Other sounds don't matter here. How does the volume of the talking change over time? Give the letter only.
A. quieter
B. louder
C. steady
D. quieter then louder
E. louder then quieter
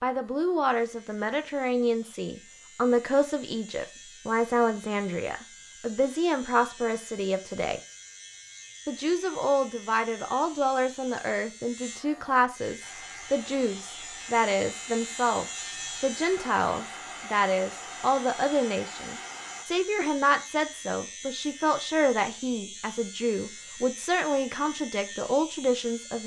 C.